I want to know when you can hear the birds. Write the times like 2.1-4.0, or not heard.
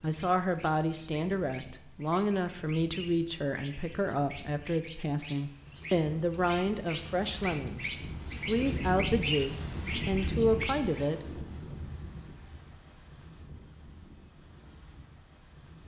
0.0-11.1.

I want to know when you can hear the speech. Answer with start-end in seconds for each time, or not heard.
0.0-11.4.